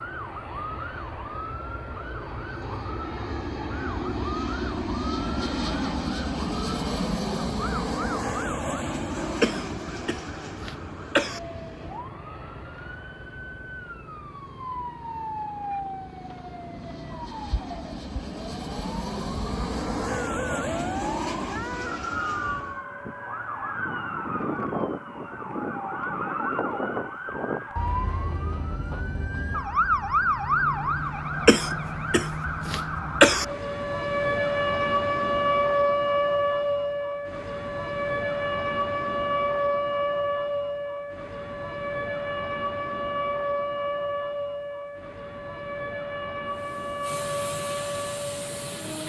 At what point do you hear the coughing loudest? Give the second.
33 s.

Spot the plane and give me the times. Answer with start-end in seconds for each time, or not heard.
0.0-22.8, 46.5-49.0.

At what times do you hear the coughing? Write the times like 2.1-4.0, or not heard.
9.4-11.4, 31.4-33.5.